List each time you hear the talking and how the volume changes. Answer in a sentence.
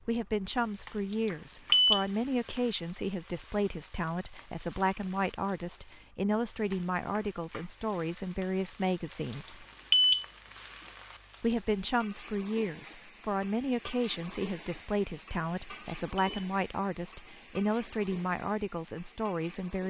You can hear the talking from 0.1 to 9.7 s, at a steady volume; and from 11.4 to 19.8 s, at a steady volume.